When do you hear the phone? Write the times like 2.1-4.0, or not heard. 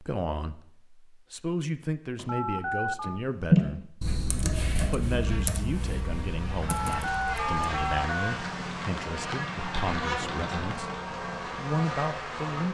2.2-3.2, 6.7-8.4.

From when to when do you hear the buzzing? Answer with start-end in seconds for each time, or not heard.
4.6-12.6.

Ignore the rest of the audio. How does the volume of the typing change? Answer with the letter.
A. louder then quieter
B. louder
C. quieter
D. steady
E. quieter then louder
C.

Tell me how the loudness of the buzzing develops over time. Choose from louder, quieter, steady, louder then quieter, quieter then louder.
louder.